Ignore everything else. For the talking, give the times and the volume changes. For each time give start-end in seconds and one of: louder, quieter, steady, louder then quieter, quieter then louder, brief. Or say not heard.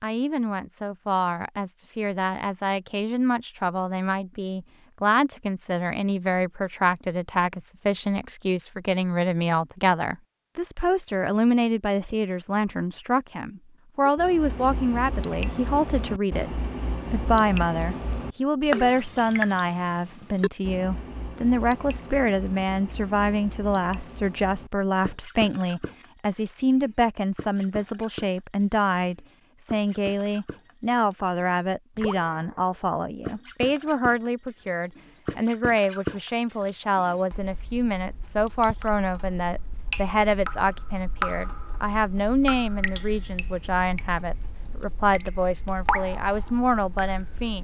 0.0-47.5 steady.